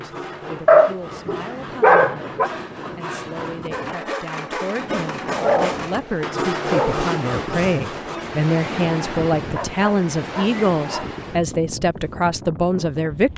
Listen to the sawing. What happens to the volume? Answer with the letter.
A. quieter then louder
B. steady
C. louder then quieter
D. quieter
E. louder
E.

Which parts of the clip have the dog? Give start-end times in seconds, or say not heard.
0.7-2.5, 5.3-7.0, 9.5-11.1.